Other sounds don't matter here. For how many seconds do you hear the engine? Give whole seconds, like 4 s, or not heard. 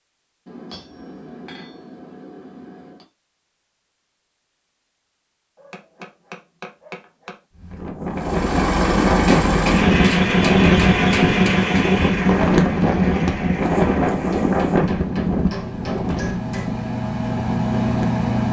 10 s.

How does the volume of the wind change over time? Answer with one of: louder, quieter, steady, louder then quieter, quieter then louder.
quieter.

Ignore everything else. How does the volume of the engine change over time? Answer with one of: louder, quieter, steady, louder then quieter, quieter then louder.
quieter then louder.